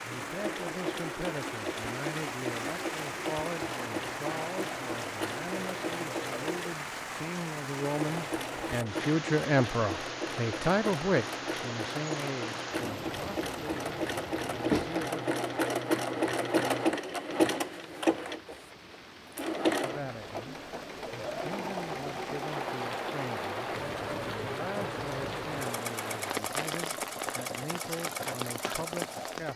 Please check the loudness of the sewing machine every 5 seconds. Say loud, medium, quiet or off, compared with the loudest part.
medium, medium, medium, loud, medium, medium.